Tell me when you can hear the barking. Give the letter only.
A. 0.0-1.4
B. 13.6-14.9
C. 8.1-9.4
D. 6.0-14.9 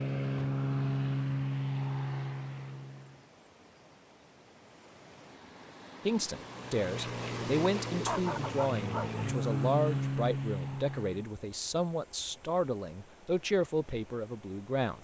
C.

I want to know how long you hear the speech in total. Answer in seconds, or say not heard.
9 s.